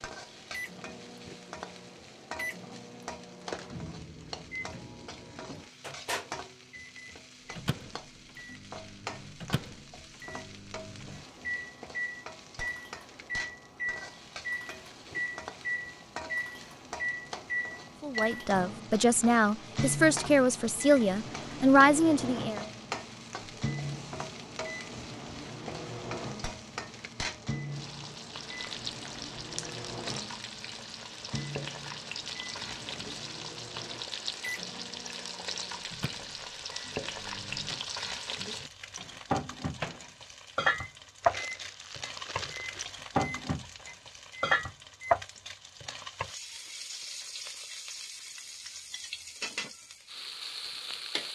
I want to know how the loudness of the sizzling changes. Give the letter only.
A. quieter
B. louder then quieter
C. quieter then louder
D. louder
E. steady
D.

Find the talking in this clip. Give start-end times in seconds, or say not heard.
18.0-22.6.